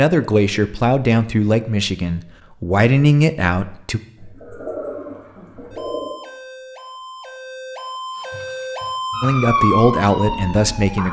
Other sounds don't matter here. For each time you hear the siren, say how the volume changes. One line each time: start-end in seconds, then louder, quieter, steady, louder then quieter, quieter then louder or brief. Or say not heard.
4.4-11.0 louder.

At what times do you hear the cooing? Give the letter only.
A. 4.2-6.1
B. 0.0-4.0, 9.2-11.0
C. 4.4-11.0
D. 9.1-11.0
A.